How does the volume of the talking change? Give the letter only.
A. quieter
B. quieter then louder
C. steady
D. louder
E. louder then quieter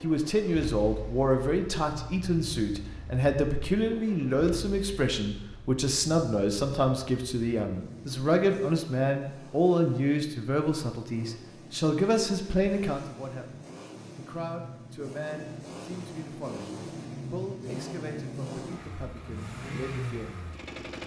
A.